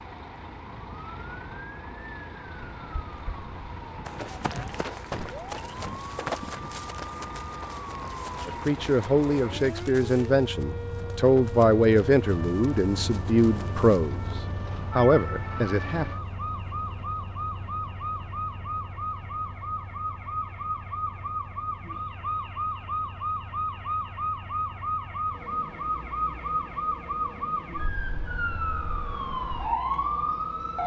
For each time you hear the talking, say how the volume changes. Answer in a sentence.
The talking can be heard from 8.4 to 16.1 s, at a steady volume.